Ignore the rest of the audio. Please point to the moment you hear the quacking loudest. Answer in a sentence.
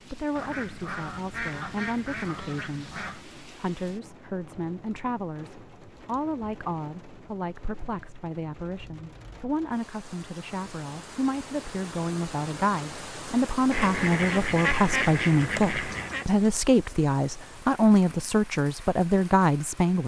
The volume of the quacking peaks at 15 seconds.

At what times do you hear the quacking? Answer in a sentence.
You can hear the quacking from 0.3 to 3.3 s and from 13.7 to 16.2 s.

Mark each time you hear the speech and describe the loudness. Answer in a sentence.
The speech can be heard from 0.1 to 20.0 s, getting louder.